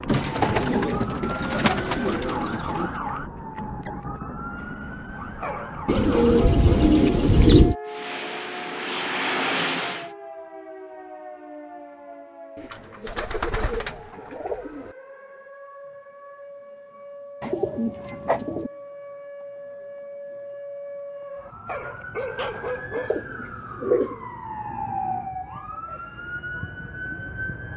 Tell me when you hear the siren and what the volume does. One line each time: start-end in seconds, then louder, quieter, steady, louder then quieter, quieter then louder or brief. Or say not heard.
0.0-27.7 quieter then louder.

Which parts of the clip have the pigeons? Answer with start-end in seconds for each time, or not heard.
0.1-3.0, 5.8-7.8, 12.6-14.9, 17.4-18.7, 22.4-24.2.